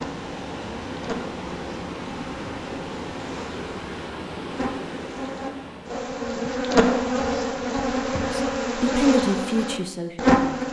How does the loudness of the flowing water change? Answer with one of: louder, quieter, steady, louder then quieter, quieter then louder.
steady.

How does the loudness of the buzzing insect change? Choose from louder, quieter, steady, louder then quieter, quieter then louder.
louder.